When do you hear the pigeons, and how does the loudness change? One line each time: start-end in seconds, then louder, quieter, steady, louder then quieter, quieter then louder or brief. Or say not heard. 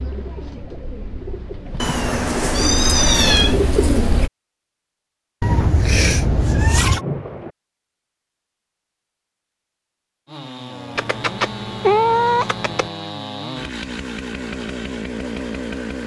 0.0-4.3 louder.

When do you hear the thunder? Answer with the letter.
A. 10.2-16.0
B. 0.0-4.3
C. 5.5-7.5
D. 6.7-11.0
C.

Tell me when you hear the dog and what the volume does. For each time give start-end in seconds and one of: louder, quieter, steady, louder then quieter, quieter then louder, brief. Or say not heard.
not heard.